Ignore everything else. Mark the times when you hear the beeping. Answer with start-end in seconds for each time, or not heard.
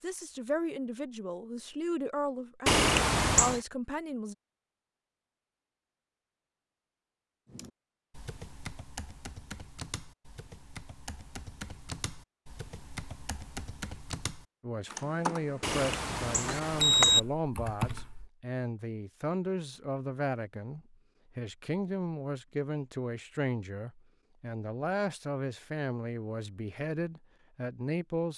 2.6-3.6, 15.6-17.2.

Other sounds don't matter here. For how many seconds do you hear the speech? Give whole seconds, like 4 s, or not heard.
18 s.